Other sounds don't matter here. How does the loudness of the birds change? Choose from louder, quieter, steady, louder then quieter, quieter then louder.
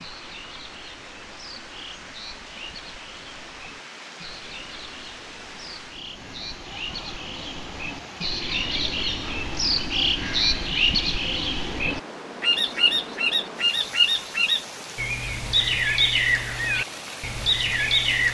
louder.